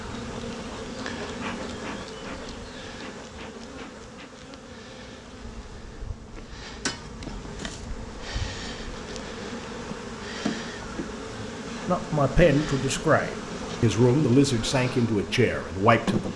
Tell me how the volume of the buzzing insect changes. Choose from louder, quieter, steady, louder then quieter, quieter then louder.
quieter then louder.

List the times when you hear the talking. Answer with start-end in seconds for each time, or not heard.
11.8-16.3.